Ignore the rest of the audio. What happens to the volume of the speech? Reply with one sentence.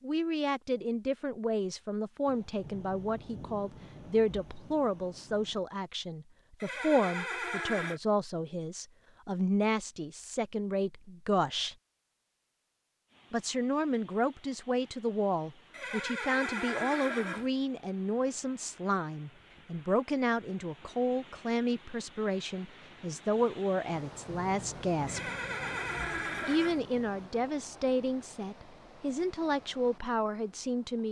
The volume of the speech stays about the same.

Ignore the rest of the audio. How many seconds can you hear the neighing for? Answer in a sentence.
The neighing can be heard for 5 seconds in total.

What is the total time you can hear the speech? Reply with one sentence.
The speech can be heard for 28 seconds in total.